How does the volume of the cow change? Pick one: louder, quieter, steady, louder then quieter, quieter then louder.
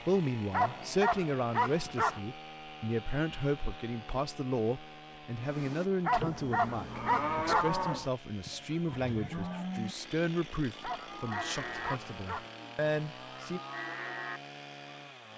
louder then quieter.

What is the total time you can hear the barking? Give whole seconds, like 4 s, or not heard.
5 s.